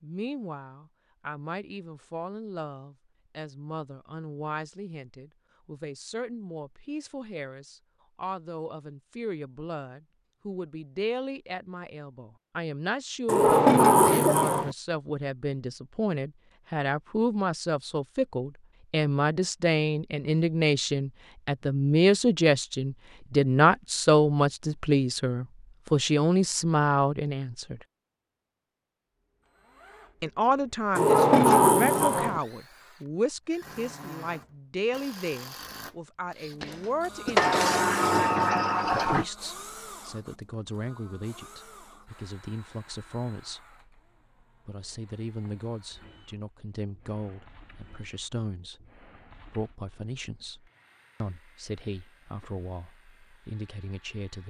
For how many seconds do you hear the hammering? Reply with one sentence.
You can't hear the hammering here.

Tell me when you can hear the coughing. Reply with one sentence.
The coughing can be heard from 13.9 to 14.6 s and from 36.6 to 37.8 s.